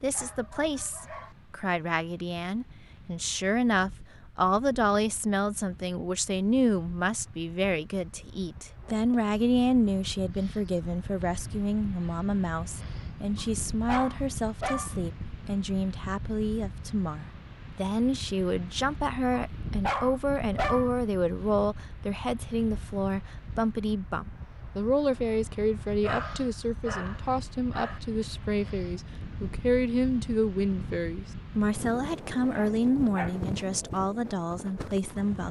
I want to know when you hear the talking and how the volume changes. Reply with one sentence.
You can hear the talking from 0.0 to 35.4 s, at a steady volume.